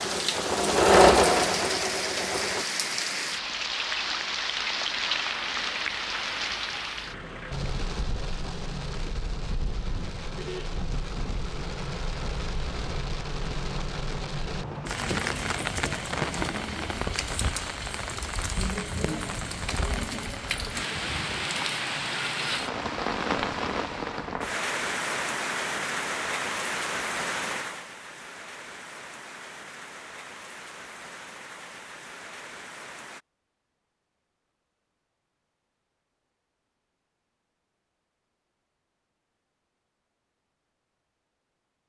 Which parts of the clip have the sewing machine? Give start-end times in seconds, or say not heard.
0.0-2.6.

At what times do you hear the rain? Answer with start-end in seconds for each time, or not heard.
0.0-33.2.